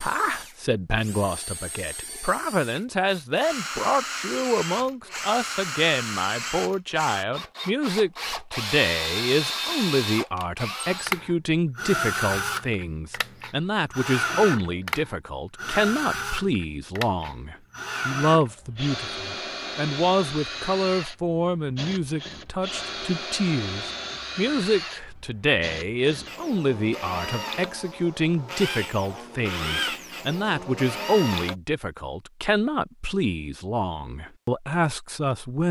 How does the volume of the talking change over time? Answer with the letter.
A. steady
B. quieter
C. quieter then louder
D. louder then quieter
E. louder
A.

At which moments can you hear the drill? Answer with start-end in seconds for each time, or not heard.
0.0-31.6.